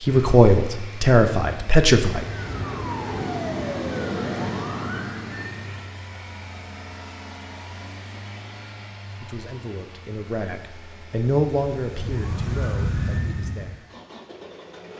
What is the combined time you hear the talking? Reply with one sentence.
The talking can be heard for 7 seconds in total.